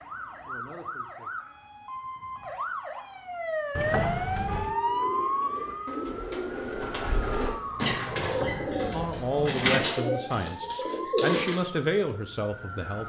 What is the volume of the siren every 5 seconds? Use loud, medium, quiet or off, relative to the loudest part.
loud, loud, medium.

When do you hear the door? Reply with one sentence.
The door can be heard from 3.8 to 4.8 s and from 8.2 to 9.6 s.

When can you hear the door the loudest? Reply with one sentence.
The loudest moment of the door is at 4 seconds.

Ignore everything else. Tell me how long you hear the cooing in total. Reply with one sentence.
The cooing can be heard for 7 seconds in total.